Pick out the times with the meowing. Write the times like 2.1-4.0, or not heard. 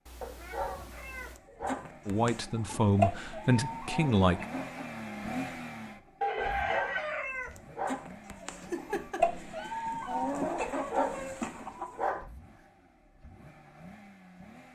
0.1-1.4, 8.6-10.2.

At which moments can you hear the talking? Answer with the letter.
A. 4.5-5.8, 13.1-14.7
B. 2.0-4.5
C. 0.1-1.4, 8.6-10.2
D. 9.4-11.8
B.